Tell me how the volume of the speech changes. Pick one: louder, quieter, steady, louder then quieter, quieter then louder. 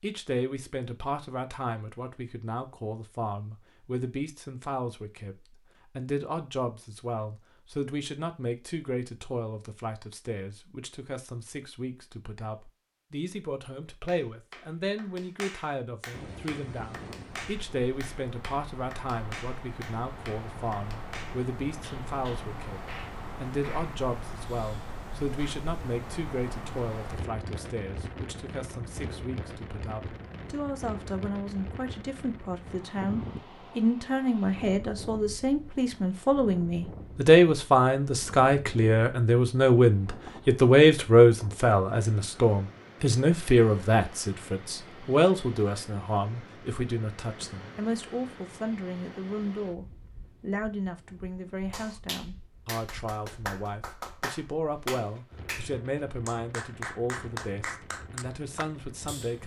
louder then quieter.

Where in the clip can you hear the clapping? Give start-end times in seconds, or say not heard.
14.1-25.7, 51.7-59.4.